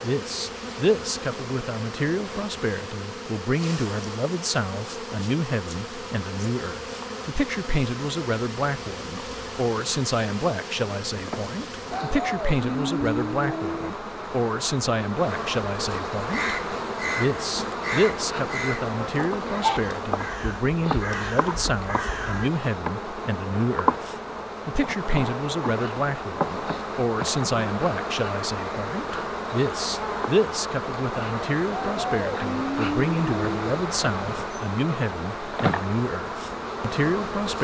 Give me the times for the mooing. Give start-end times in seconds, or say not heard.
11.9-13.9, 31.7-33.8.